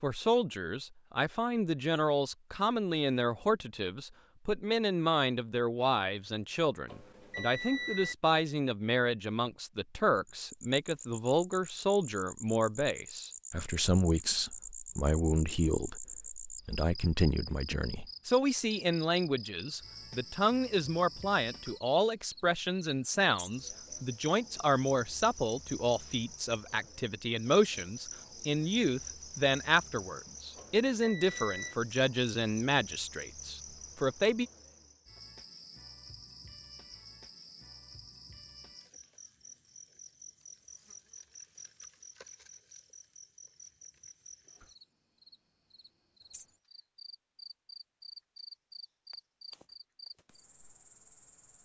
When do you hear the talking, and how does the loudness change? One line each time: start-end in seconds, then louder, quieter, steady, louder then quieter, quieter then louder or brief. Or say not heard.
0.0-34.5 steady.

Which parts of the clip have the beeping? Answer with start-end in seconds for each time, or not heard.
6.8-8.2, 30.6-31.8.